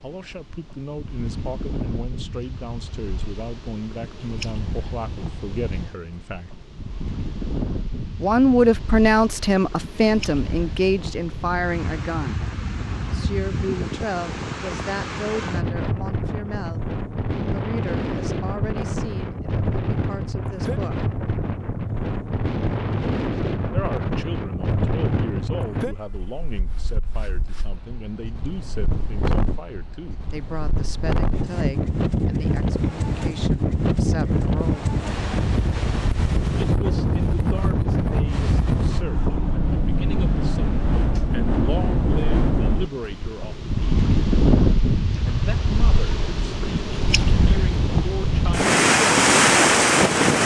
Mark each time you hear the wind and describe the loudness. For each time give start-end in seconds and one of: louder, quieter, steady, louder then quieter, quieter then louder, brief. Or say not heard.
0.0-50.4 louder.